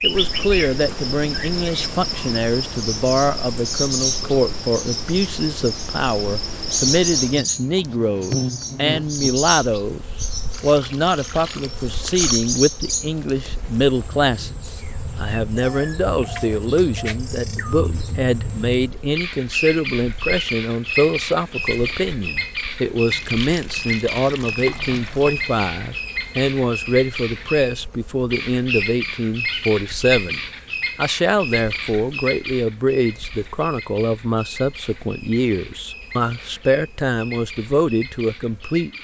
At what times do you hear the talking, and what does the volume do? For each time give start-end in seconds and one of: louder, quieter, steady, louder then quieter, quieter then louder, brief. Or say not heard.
0.0-38.9 steady.